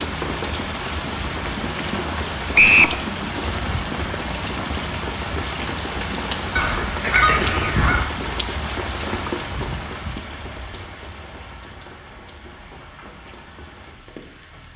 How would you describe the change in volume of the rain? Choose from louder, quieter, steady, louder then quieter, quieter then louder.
quieter.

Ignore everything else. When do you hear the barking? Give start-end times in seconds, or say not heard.
not heard.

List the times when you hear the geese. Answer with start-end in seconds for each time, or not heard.
6.5-8.1.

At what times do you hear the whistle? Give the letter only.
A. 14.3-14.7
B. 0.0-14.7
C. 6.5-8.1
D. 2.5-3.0
D.